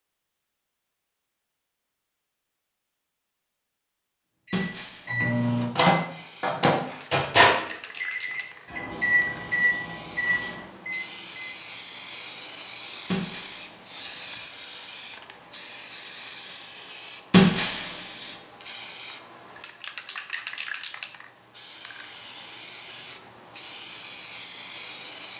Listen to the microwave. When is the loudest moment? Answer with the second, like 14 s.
7 s.